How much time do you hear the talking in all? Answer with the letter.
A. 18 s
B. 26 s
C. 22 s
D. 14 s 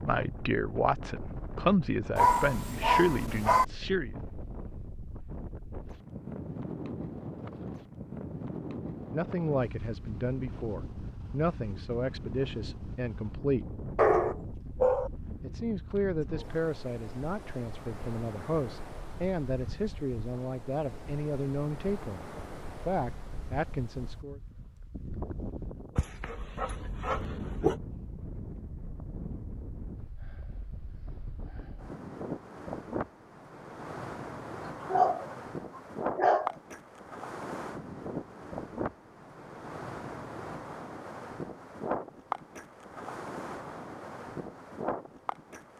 A.